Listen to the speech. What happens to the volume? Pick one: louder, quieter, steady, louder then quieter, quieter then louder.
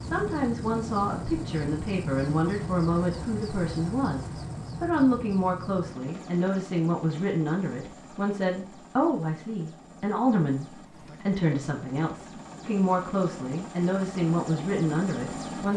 steady.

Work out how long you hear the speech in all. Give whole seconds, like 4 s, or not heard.
16 s.